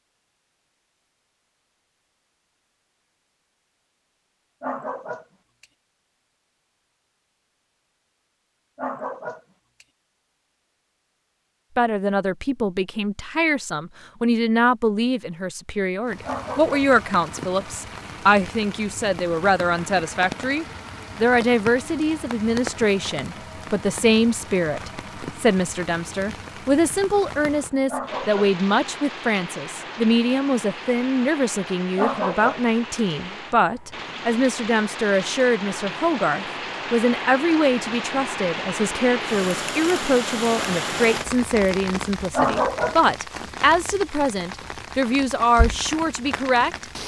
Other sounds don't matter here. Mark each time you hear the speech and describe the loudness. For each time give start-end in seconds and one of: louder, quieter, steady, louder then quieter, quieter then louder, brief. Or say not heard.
11.8-46.9 steady.